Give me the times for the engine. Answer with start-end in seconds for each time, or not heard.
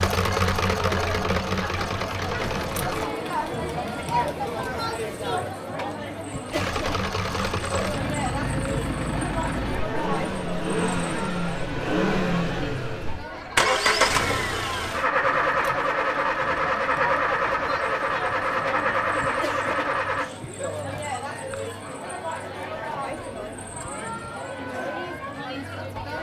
0.0-3.1, 6.5-20.3.